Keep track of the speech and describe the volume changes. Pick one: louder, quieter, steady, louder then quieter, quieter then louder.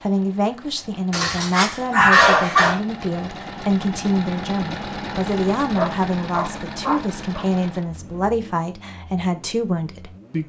steady.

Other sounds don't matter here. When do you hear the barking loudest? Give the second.
2 s.